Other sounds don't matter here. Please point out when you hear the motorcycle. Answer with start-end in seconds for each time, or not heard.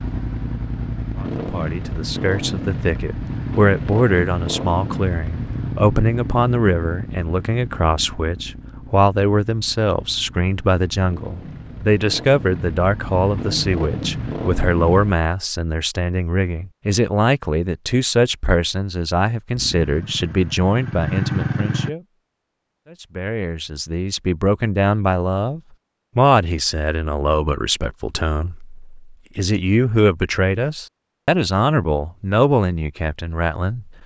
0.0-15.2, 19.6-21.9.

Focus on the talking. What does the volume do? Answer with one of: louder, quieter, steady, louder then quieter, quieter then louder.
steady.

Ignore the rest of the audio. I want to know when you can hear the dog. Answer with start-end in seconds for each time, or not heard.
not heard.